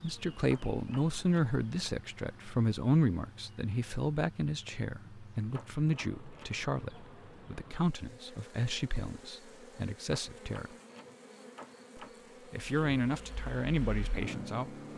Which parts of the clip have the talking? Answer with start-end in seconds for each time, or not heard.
0.0-10.7, 11.9-14.8.